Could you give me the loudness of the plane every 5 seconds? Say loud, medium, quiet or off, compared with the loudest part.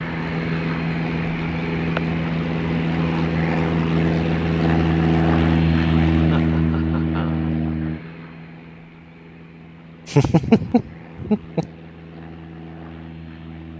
loud, loud, quiet.